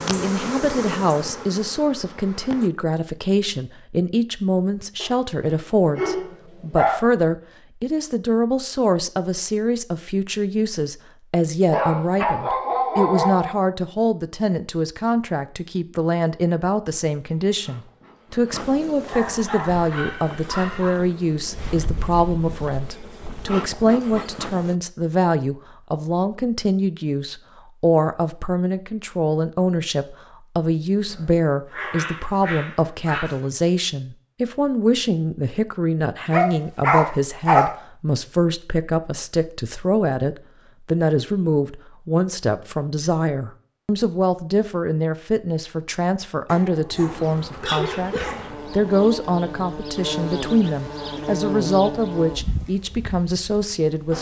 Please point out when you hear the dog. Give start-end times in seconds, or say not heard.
5.0-7.0, 11.7-13.6, 19.1-21.0, 31.1-33.4, 36.3-37.7, 46.5-48.8.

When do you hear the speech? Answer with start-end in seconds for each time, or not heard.
0.0-54.1.